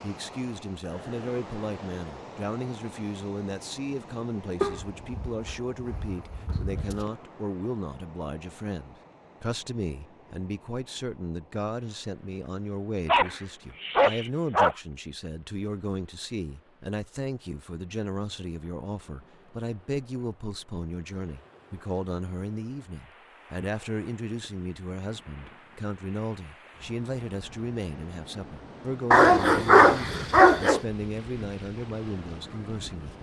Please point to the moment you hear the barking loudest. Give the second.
30 s.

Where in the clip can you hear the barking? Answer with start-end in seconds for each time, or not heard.
4.6-7.1, 13.1-14.8, 29.1-30.8.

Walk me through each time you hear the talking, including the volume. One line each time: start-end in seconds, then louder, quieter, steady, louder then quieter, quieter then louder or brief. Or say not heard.
0.0-33.1 steady.